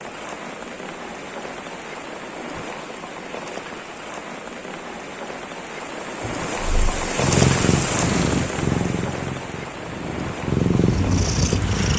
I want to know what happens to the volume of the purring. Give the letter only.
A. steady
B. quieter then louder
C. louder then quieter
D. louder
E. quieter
B.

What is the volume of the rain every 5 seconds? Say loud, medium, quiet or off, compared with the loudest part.
medium, loud, medium.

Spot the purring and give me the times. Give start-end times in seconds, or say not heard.
6.2-11.9.